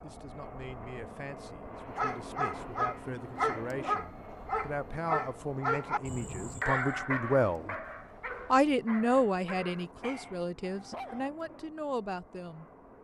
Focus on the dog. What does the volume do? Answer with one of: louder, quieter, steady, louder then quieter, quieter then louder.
quieter.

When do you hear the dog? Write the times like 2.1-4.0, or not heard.
1.9-11.3.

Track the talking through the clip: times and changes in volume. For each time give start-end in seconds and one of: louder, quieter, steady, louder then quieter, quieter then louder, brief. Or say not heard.
0.0-7.8 louder
8.5-12.7 quieter.